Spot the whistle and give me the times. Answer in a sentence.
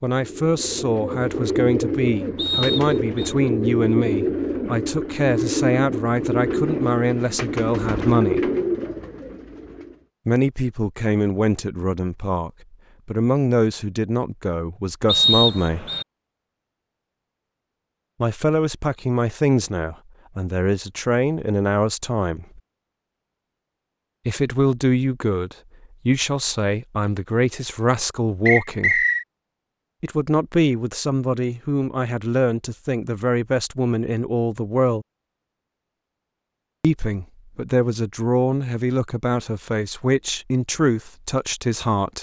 The whistle can be heard from 2.4 to 3.4 s, from 15.1 to 16.1 s and from 28.4 to 29.2 s.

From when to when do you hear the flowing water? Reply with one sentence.
The flowing water can't be heard in this clip.